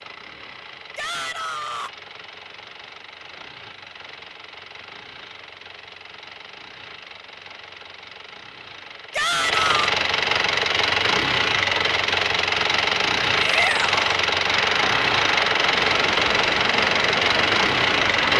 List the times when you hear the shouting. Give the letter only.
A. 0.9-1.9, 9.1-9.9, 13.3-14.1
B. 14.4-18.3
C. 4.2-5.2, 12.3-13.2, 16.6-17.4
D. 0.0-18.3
A.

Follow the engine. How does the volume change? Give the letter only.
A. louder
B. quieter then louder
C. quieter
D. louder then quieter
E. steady
A.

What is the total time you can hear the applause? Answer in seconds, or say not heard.
4 s.